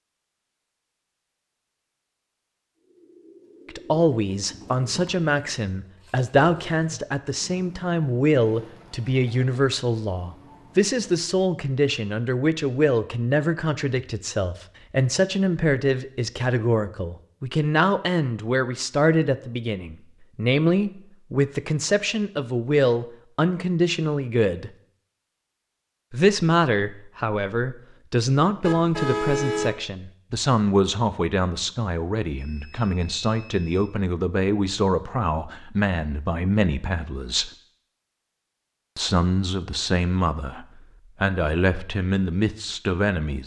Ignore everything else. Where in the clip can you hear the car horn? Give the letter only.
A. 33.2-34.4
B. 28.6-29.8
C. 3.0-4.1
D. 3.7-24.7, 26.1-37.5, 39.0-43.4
B.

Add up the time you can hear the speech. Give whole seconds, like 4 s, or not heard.
37 s.